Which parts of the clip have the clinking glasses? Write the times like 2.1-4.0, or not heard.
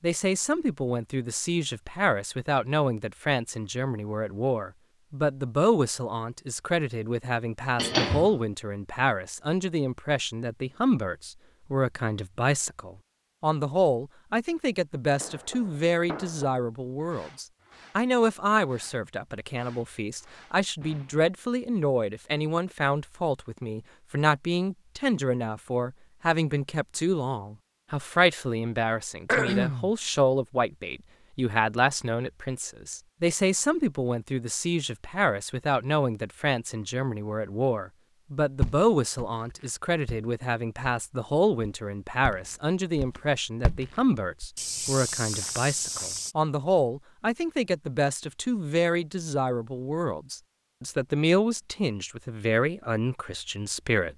not heard.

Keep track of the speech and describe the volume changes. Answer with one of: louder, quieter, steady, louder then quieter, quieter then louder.
steady.